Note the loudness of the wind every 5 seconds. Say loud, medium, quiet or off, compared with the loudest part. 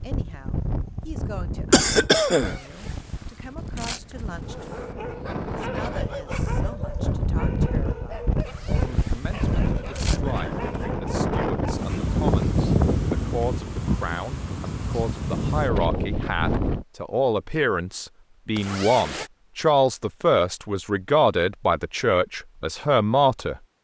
medium, loud, loud, loud, off.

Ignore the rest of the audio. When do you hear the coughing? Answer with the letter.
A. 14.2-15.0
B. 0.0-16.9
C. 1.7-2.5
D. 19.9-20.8
C.